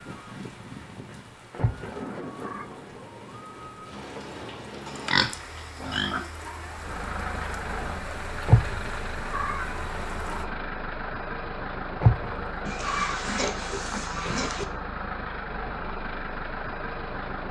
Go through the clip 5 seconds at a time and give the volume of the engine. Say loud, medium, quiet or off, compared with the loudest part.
off, loud, loud, loud.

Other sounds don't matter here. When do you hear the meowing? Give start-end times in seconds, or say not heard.
1.6-2.6, 8.4-9.8, 12.0-13.2.